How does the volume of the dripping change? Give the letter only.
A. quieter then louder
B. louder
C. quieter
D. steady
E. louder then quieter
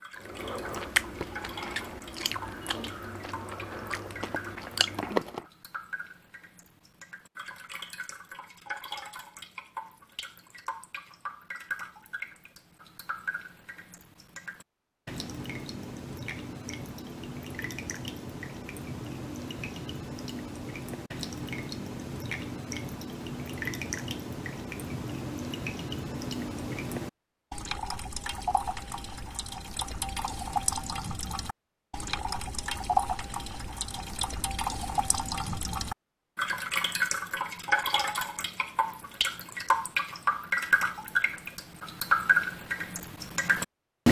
B.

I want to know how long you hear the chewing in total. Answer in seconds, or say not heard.
5 s.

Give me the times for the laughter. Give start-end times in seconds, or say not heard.
not heard.